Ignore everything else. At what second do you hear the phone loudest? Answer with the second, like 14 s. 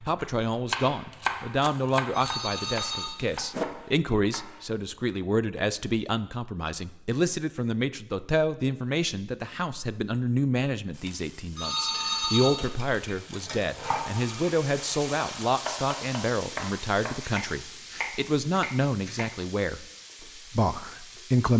12 s.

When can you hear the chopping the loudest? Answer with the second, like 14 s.
1 s.